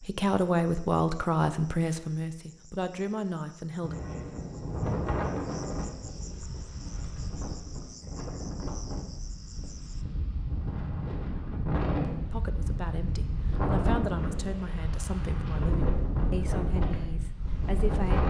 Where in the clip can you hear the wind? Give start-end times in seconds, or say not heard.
3.8-18.2.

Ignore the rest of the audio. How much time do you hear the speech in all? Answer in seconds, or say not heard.
10 s.